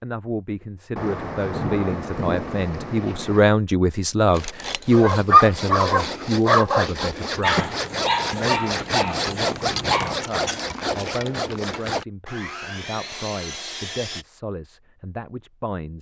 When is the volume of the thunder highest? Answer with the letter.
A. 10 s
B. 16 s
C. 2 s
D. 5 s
C.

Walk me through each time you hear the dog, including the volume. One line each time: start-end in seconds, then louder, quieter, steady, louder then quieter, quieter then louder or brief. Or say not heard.
4.9-11.2 quieter.